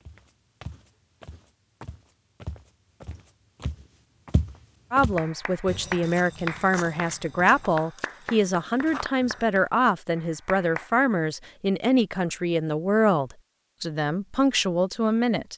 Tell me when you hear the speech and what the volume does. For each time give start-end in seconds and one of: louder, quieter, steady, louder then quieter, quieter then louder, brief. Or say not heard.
4.9-15.5 steady.